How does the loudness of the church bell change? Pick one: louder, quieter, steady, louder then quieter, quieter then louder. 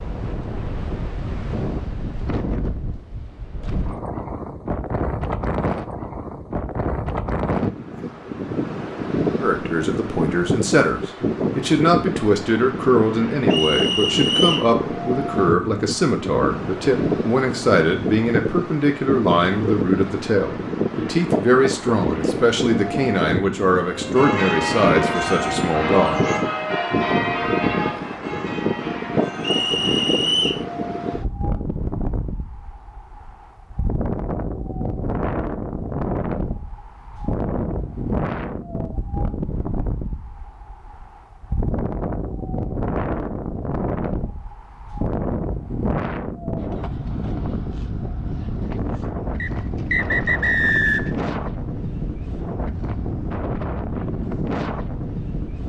quieter.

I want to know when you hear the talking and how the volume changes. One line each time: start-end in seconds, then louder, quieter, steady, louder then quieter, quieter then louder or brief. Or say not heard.
9.4-26.2 steady.